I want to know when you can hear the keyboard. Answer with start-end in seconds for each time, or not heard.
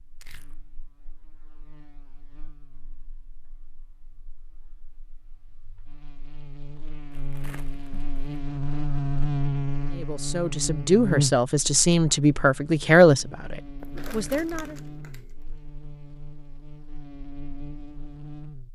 not heard.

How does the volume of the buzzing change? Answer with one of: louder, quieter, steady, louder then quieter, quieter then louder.
louder then quieter.